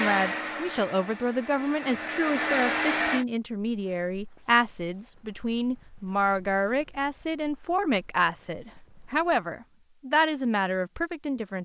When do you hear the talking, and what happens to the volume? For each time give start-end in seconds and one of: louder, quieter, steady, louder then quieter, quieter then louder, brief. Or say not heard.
0.0-11.5 steady.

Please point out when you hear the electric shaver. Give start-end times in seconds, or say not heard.
not heard.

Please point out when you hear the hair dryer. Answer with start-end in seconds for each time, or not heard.
0.0-3.2.